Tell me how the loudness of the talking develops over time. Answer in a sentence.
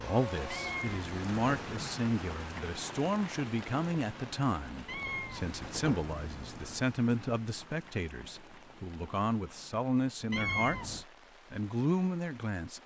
The loudness of the talking stays about the same.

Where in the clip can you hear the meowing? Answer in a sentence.
The meowing can be heard from 0.5 to 1.9 s, from 4.8 to 6.8 s and from 10.3 to 11.1 s.